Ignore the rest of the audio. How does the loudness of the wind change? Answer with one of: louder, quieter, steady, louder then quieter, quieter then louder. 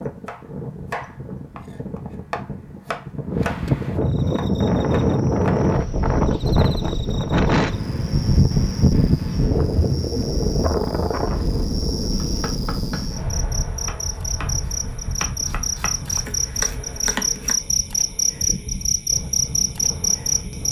louder then quieter.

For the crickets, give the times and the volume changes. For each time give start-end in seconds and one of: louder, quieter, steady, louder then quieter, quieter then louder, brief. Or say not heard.
4.0-20.6 louder.